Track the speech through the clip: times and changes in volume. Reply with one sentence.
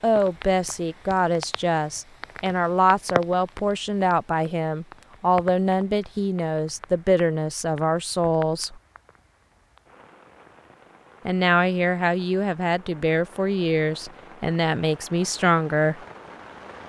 You can hear the speech from 0.0 to 8.8 s, at a steady volume; and from 11.2 to 16.0 s, at a steady volume.